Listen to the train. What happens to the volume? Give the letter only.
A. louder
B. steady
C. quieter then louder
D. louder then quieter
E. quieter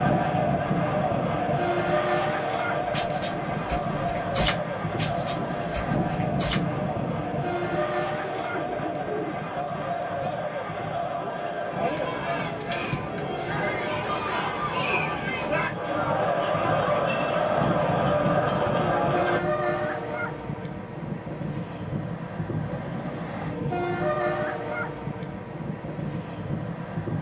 C.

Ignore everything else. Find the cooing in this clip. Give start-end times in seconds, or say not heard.
2.9-9.4.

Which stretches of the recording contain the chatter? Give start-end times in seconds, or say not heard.
0.0-19.4.